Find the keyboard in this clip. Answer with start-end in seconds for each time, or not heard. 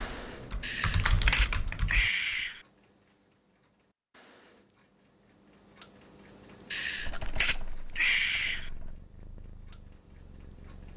0.0-2.1, 7.0-9.0.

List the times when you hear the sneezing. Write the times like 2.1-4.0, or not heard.
0.6-2.6, 6.7-8.7.